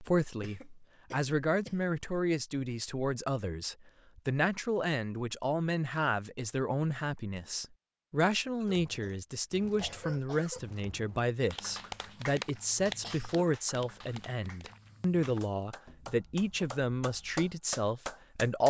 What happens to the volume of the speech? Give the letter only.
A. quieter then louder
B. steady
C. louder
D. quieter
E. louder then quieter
B.